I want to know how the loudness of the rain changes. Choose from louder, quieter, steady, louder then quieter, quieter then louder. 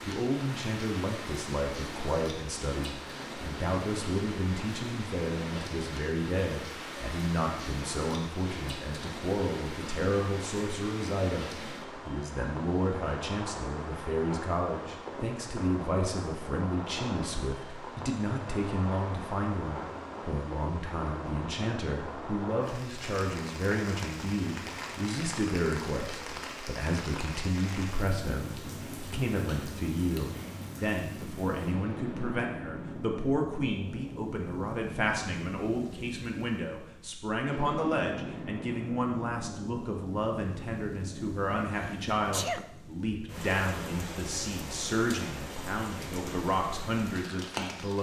steady.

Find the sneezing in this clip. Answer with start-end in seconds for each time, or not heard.
41.8-42.6.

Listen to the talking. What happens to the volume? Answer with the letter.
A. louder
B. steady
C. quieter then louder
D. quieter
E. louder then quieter
B.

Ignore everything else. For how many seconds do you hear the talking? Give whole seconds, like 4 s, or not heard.
48 s.